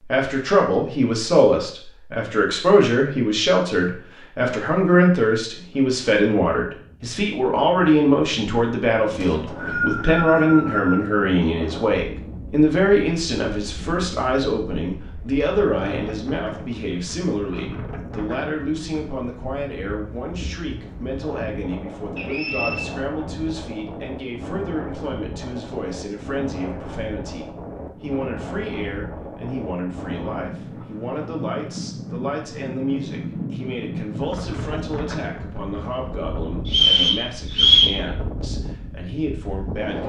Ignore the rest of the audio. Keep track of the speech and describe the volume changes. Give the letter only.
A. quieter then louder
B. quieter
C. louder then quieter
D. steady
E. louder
B.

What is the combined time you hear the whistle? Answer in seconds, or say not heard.
4 s.